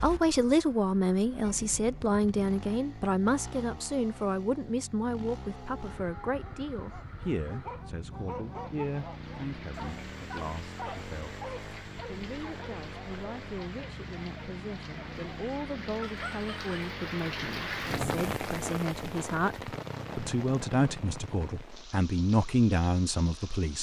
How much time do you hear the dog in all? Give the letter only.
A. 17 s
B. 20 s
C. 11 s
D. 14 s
C.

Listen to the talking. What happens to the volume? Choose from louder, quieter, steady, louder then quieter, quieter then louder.
quieter then louder.